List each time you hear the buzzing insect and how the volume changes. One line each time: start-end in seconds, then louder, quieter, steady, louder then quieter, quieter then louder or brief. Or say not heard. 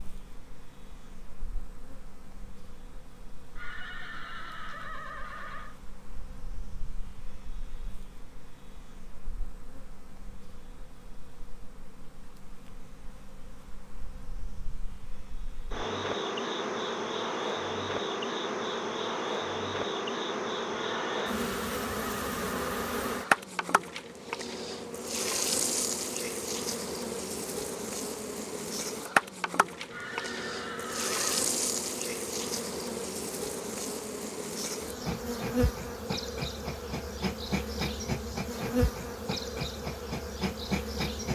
0.0-41.3 louder.